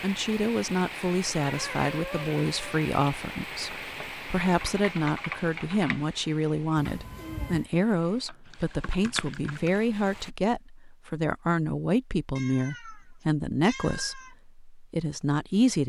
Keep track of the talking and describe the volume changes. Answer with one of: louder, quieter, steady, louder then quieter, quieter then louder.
steady.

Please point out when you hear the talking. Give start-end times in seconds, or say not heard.
0.0-15.8.